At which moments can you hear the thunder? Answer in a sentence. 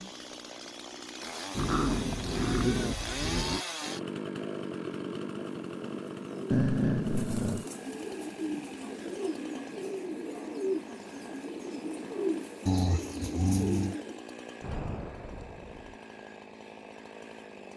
The thunder can be heard from 14.6 to 16.0 s.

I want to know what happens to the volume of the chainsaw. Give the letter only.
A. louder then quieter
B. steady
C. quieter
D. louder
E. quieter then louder
C.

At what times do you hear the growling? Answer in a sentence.
The growling can be heard from 1.6 to 3.6 s, from 6.5 to 7.7 s and from 12.7 to 13.9 s.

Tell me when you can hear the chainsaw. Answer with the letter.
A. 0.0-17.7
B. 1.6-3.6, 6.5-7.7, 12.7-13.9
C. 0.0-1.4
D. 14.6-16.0
A.